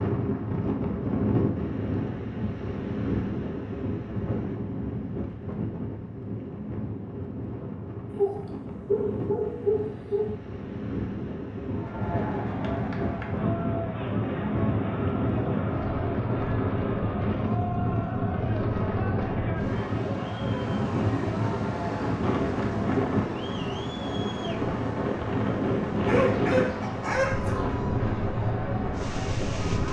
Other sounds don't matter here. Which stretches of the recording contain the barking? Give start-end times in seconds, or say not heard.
8.1-10.3, 26.1-27.8.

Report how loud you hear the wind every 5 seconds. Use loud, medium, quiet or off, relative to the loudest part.
loud, medium, loud, loud, loud, loud.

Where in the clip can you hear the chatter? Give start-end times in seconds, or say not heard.
11.7-29.8.